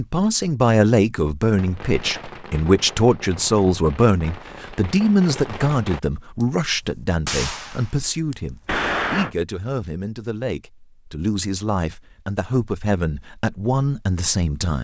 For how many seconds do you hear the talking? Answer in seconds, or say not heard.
15 s.